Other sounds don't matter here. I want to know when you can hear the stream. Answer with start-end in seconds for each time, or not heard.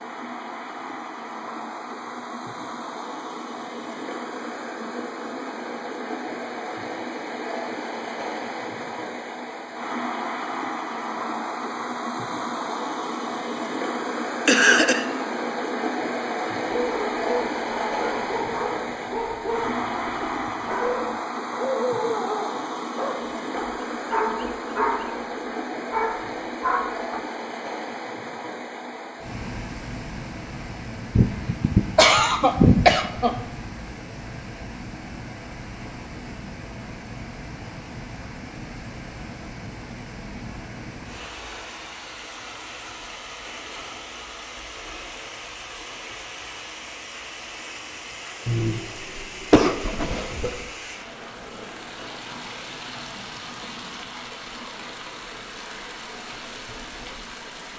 0.0-57.7.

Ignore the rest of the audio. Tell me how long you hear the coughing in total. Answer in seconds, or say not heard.
5 s.